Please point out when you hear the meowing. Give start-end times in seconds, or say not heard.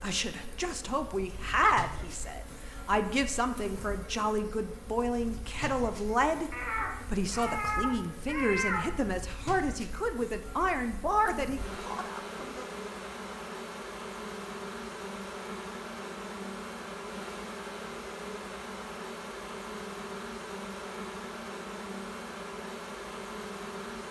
6.5-9.2.